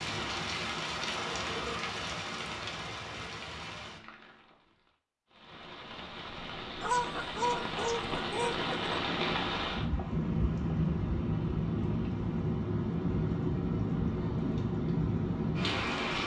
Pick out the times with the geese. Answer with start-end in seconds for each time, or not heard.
6.8-8.9.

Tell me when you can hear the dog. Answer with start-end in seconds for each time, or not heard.
not heard.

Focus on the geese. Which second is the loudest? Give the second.
7 s.